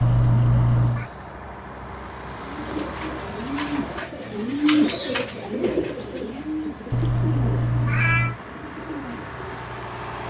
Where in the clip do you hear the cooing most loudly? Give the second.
5 s.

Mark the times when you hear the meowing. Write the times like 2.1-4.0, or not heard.
0.0-1.1, 6.9-8.3.